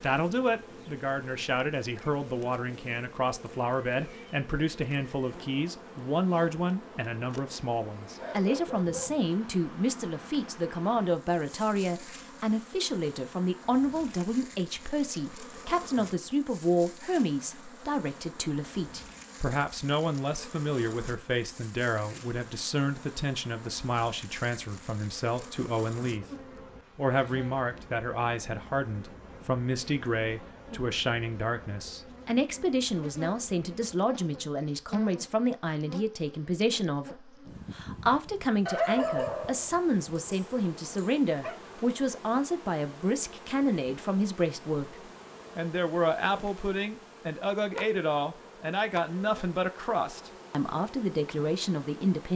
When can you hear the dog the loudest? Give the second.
39 s.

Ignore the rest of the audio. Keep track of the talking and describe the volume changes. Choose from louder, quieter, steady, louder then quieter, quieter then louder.
steady.